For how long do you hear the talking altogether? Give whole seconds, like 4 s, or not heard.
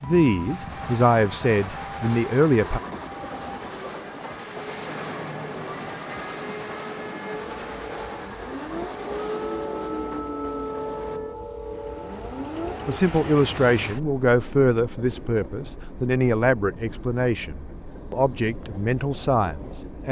10 s.